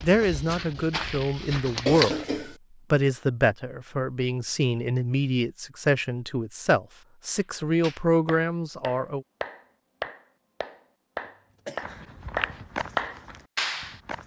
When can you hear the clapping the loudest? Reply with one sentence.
The volume of the clapping peaks at 13 seconds.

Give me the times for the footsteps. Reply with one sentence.
You can hear the footsteps from 0.0 to 2.4 s and from 11.8 to 14.2 s.